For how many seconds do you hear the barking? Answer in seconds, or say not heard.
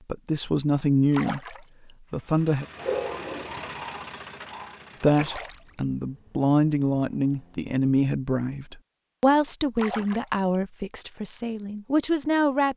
2 s.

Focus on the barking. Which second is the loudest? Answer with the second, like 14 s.
3 s.